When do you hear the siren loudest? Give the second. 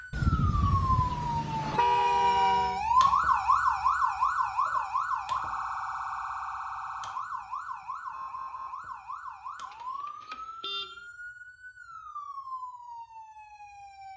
3 s.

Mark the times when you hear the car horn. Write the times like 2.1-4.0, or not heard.
0.1-2.8, 9.7-11.1.